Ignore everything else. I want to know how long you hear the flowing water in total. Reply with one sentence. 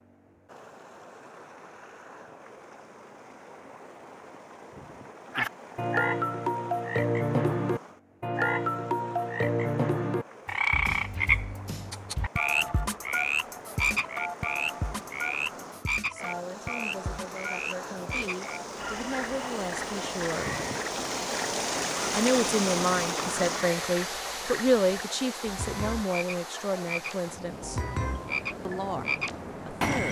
The flowing water can be heard for 30 seconds in total.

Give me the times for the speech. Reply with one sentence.
You can hear the speech from 16.1 to 20.5 s, from 22.1 to 27.8 s and from 28.6 to 30.0 s.